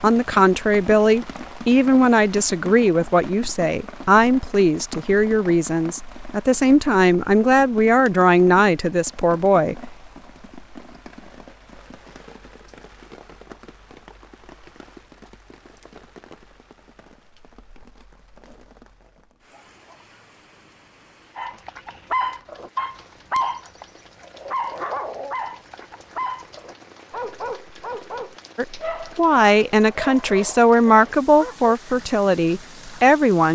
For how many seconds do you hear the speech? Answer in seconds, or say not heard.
15 s.